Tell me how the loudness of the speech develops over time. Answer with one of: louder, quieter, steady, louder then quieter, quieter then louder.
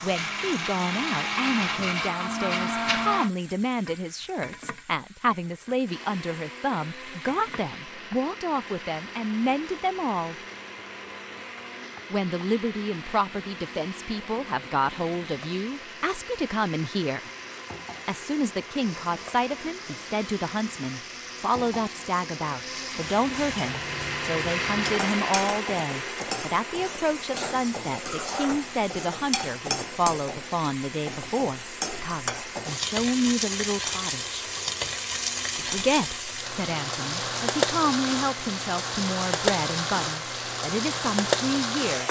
steady.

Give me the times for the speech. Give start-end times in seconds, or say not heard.
0.0-10.3, 12.1-17.3, 18.1-34.5, 35.5-42.0.